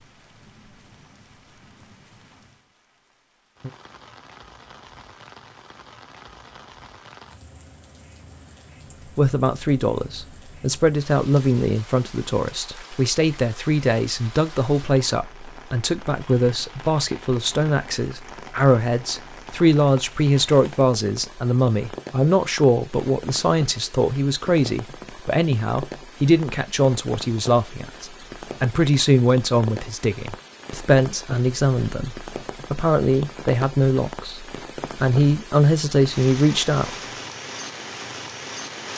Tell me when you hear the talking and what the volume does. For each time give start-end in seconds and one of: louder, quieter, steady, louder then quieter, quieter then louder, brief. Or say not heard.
9.2-36.9 steady.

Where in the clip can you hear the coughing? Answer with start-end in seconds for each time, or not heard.
not heard.